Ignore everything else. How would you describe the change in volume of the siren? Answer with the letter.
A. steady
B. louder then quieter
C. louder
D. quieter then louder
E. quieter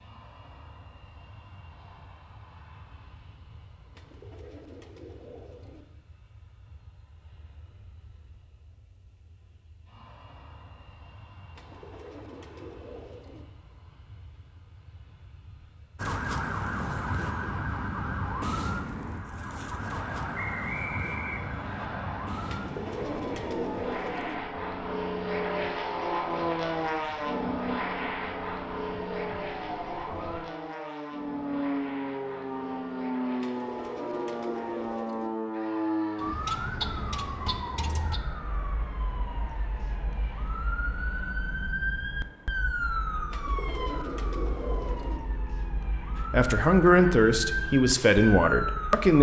D.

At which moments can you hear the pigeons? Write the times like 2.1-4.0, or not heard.
3.9-5.8, 11.6-13.4, 22.4-24.4, 33.4-35.3, 43.3-45.2.